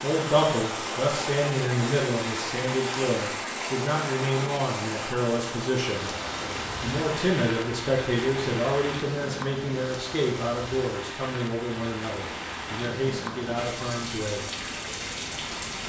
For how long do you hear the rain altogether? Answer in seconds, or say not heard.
16 s.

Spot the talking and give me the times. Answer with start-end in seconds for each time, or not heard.
0.0-6.1, 6.8-14.4.